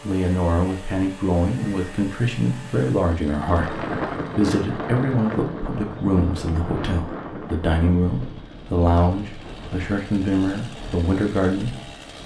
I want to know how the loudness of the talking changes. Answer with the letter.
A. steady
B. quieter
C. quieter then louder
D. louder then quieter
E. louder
A.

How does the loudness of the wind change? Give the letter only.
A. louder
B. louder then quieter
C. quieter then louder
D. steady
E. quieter
E.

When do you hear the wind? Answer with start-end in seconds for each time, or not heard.
3.4-12.2.